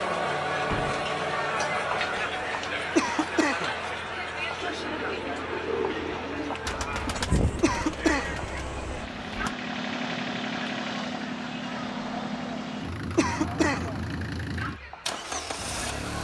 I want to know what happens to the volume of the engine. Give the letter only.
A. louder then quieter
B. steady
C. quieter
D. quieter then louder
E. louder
E.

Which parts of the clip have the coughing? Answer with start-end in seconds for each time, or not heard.
3.0-3.7, 7.6-8.4, 13.2-13.9.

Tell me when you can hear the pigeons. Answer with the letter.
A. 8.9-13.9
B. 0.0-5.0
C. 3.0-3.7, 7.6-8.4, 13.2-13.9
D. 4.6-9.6
D.